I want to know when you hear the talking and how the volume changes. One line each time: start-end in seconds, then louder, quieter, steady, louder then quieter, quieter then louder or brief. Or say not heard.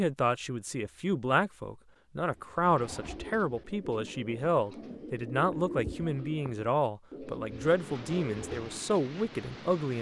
0.0-9.9 steady.